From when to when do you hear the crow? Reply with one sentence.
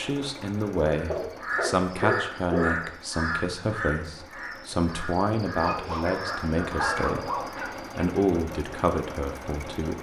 The crow can be heard from 0.8 to 7.5 s.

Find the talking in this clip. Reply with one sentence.
The talking can be heard from 0.0 to 9.9 s.